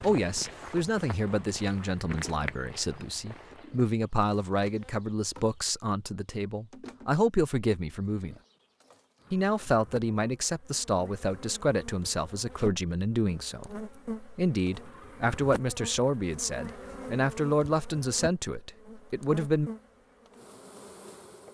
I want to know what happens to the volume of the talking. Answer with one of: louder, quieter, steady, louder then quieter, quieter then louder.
steady.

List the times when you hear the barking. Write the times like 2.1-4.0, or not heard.
not heard.